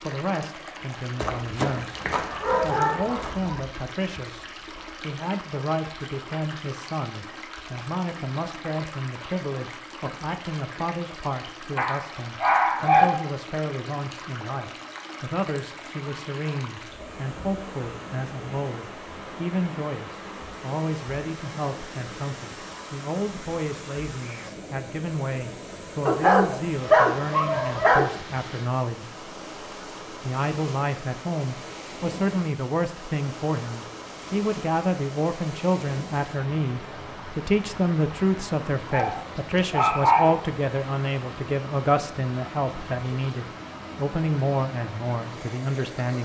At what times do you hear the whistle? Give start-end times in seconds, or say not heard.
not heard.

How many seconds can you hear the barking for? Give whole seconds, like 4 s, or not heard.
7 s.